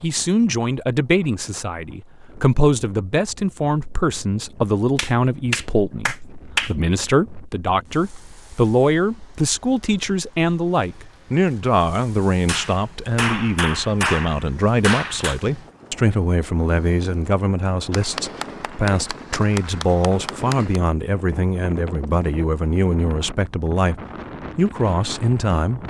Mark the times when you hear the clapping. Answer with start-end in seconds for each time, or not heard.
5.0-6.8, 12.4-15.4, 17.9-20.8.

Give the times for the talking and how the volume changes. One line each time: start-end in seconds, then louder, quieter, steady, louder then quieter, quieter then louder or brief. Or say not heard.
0.0-25.8 steady.